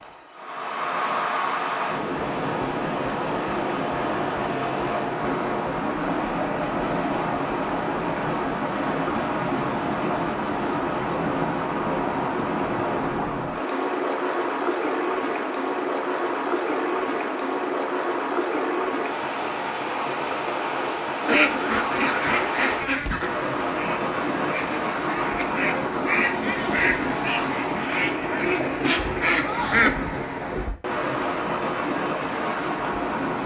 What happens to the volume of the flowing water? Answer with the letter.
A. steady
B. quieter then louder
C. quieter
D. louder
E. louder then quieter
A.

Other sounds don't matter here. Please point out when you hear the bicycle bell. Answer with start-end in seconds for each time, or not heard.
24.5-25.6.